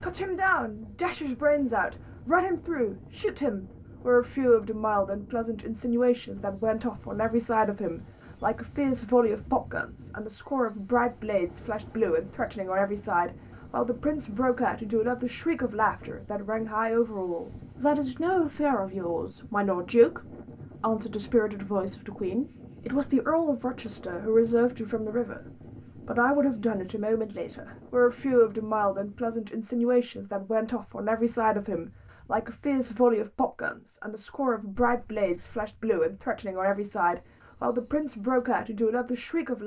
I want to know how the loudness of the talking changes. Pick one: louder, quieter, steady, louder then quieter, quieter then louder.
steady.